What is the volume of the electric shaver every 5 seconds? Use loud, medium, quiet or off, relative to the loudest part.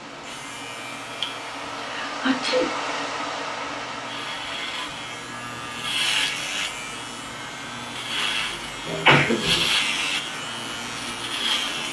medium, loud, loud.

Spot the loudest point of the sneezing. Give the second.
9 s.